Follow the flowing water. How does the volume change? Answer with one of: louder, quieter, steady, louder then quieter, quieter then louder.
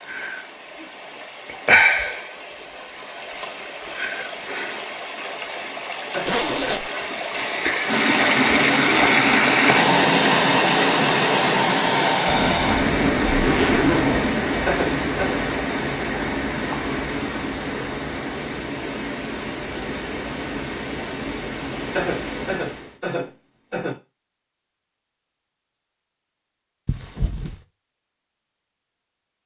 louder then quieter.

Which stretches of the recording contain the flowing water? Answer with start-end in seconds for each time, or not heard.
0.0-23.0.